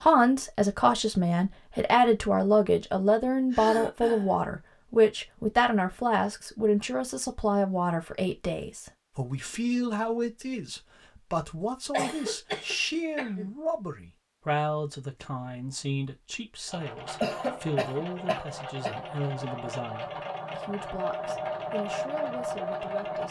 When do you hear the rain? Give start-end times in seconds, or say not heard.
not heard.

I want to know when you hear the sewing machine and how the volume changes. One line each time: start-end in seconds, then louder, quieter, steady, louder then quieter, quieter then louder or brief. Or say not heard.
16.6-23.2 louder.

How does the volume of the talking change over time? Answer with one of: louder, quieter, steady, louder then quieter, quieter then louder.
quieter.